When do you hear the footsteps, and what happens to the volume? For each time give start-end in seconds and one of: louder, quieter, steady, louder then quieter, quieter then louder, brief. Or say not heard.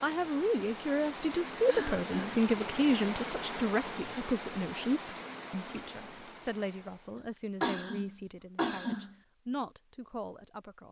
not heard.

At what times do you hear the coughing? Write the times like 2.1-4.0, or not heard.
1.6-2.5, 7.6-9.2.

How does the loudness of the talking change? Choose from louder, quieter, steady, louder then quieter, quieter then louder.
quieter.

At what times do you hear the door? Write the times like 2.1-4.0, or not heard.
not heard.